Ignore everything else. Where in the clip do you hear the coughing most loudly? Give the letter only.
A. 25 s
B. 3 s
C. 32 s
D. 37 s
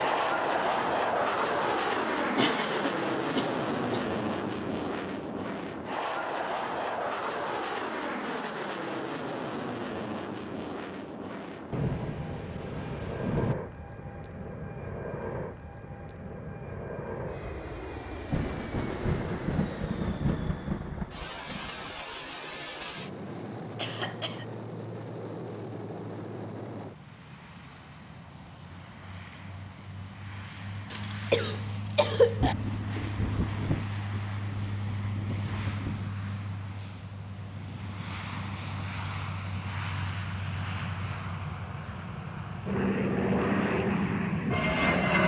C.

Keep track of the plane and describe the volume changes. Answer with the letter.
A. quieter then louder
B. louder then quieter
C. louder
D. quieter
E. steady
A.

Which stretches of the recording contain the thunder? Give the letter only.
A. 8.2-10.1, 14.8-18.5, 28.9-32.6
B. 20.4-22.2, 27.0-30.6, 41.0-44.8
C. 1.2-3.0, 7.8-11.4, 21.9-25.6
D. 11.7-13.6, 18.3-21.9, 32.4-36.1
D.